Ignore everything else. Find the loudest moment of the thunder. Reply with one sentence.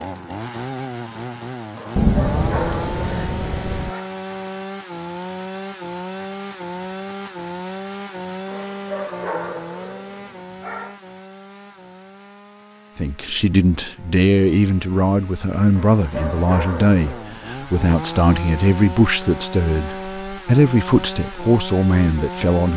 The loudest moment of the thunder is at 2 seconds.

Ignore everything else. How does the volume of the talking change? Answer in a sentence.
The volume of the talking stays about the same.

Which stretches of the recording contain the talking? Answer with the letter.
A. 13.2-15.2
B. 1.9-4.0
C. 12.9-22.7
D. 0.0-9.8
C.